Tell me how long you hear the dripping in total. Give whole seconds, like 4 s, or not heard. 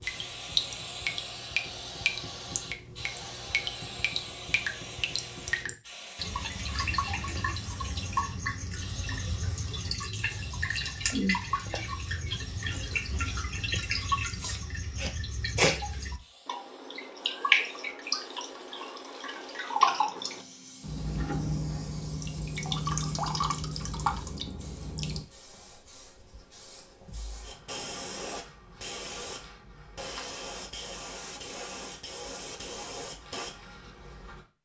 25 s.